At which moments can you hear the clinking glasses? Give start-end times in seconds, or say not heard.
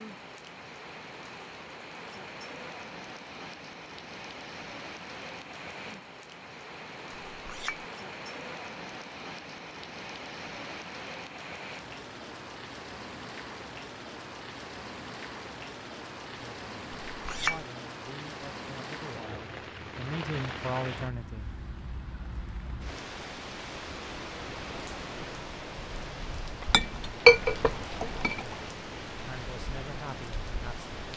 7.3-7.8, 17.1-17.6, 26.5-28.4.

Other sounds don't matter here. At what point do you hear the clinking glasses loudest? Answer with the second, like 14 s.
27 s.